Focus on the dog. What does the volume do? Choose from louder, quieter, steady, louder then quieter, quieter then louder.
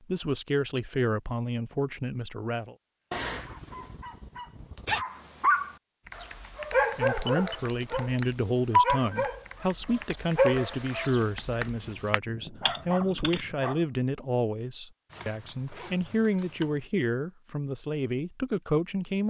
quieter.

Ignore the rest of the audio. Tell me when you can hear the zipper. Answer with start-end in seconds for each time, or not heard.
3.1-5.0, 15.1-16.9.